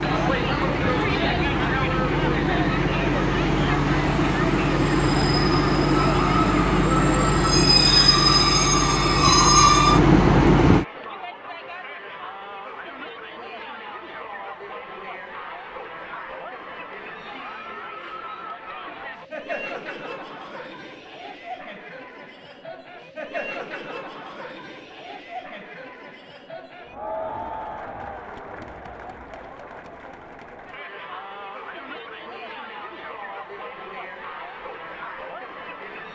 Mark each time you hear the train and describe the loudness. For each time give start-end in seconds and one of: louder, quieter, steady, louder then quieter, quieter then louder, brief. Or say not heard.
0.0-10.8 louder.